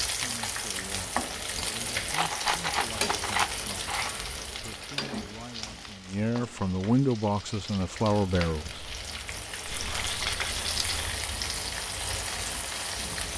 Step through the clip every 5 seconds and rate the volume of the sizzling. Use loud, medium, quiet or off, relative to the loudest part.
loud, medium, loud.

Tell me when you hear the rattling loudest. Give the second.
3 s.